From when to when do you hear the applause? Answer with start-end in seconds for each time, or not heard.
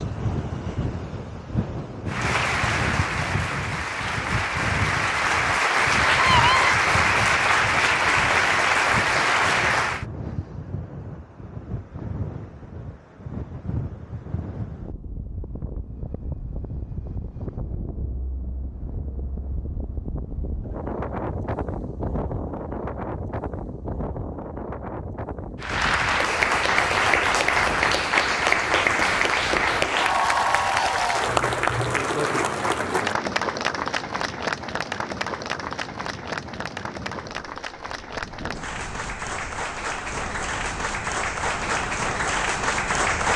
2.0-10.1, 25.6-43.3.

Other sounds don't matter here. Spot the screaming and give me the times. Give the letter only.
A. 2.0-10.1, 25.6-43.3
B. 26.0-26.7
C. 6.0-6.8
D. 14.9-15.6
C.